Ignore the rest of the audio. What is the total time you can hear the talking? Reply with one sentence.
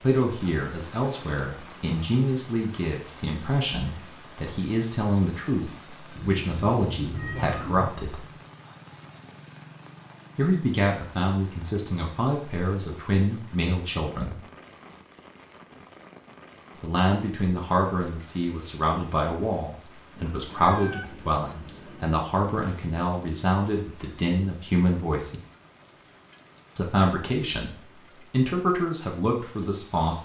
The talking can be heard for 24 seconds in total.